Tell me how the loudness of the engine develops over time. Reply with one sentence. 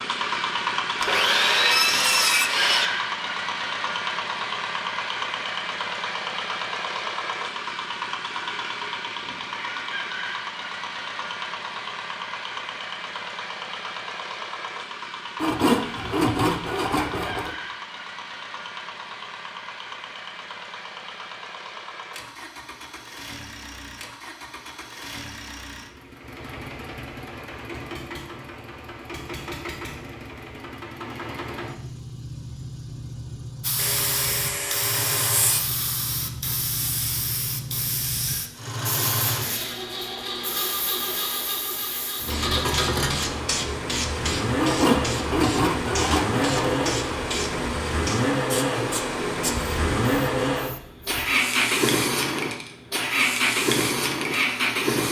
The loudness of the engine goes down, then up.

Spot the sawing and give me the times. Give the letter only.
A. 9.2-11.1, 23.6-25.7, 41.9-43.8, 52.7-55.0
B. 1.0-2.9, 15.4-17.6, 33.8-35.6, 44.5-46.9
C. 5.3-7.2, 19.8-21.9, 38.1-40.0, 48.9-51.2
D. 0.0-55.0
B.